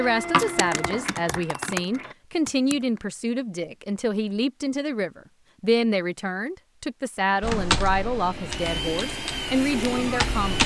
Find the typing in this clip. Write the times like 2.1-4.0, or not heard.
0.0-3.1, 7.4-10.6.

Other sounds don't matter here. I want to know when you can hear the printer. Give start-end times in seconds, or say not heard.
0.0-2.1, 7.2-10.6.